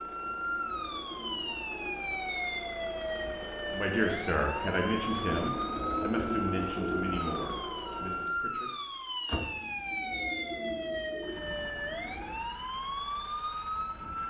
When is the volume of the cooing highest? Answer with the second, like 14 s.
6 s.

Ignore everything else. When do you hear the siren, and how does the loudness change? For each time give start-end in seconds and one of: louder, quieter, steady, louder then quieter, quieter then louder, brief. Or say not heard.
0.0-14.2 steady.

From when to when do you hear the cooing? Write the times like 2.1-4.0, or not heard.
0.2-2.2, 5.5-7.2, 9.6-12.3.